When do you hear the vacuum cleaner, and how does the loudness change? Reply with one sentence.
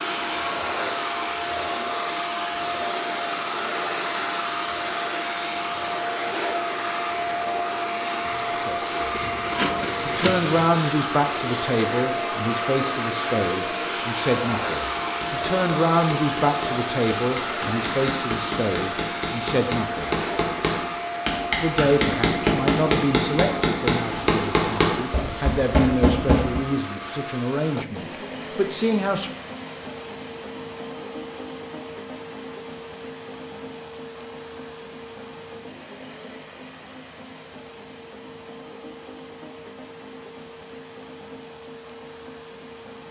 You can hear the vacuum cleaner from 0.0 to 43.0 s, getting quieter.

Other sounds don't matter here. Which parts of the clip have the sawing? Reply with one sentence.
You can hear the sawing from 9.1 to 10.8 s.